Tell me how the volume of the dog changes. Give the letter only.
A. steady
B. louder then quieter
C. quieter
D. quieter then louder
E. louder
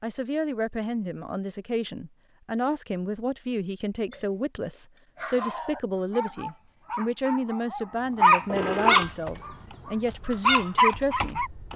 E.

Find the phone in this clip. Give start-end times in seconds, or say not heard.
8.4-9.2.